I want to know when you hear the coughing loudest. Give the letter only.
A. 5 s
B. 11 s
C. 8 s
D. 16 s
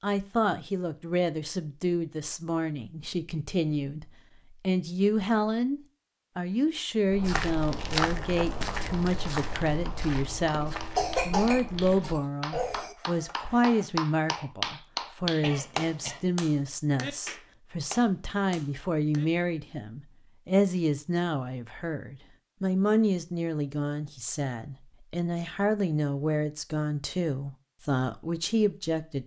B.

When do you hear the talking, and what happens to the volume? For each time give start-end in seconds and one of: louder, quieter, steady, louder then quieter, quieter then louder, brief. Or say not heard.
0.0-29.2 steady.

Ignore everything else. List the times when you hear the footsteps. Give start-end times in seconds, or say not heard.
7.0-12.9.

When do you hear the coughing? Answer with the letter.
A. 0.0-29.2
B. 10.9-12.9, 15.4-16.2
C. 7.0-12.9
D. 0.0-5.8
B.